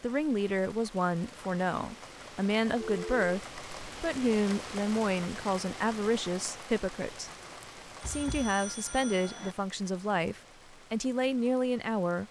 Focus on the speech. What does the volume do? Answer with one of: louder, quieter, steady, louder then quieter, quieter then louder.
steady.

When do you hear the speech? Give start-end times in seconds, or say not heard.
0.0-7.3, 8.1-12.2.